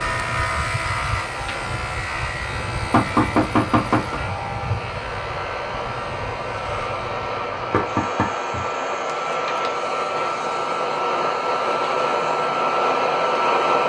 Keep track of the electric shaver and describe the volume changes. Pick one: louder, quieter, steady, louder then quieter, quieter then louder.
quieter.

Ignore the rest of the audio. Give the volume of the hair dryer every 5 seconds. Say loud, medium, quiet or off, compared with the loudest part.
quiet, medium, loud.